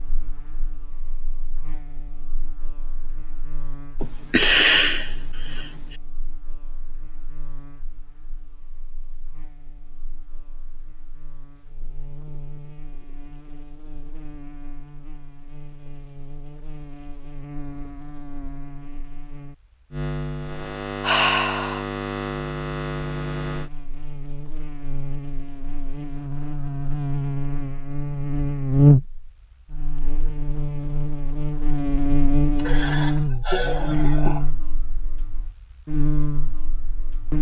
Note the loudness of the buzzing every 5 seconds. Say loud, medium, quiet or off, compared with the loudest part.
quiet, quiet, quiet, quiet, medium, loud, loud, medium.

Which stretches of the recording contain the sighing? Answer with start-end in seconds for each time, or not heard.
4.0-6.0, 21.0-21.9, 32.5-34.5.